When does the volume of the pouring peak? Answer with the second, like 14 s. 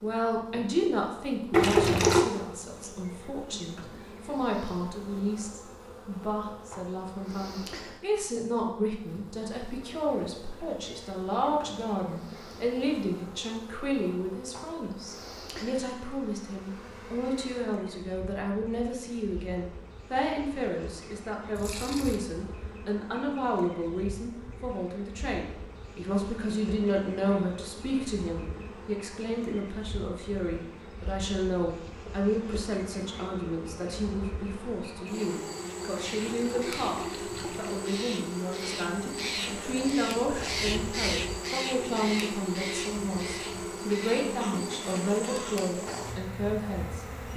2 s.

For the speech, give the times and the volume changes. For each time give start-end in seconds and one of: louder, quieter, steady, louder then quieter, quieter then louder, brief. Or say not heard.
0.0-47.0 steady.